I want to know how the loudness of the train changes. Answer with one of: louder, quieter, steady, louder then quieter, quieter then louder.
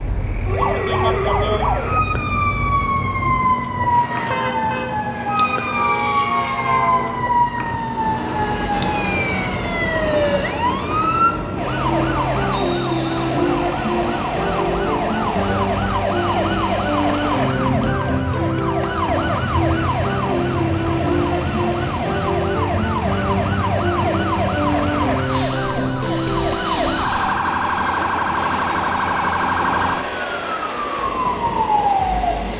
steady.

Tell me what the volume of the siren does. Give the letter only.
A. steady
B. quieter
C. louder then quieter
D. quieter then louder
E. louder
A.